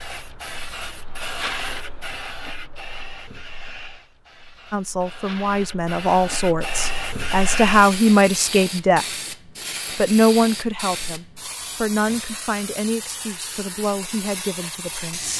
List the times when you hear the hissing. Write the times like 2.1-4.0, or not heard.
0.0-15.3.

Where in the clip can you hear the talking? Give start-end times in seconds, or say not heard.
4.7-9.2, 9.9-15.3.